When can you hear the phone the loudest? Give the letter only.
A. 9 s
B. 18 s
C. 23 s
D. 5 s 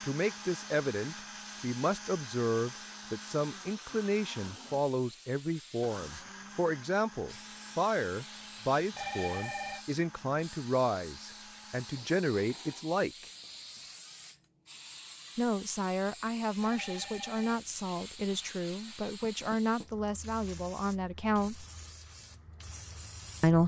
A.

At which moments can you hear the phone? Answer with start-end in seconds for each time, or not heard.
8.9-9.8, 16.6-17.6.